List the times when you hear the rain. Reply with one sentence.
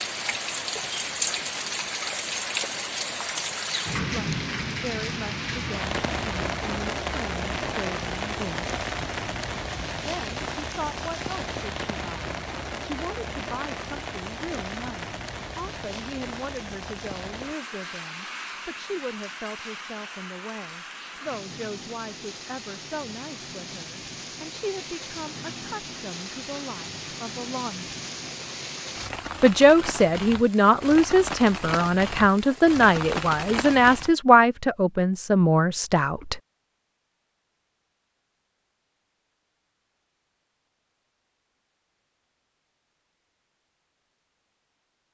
The rain can be heard from 0.0 to 34.1 s.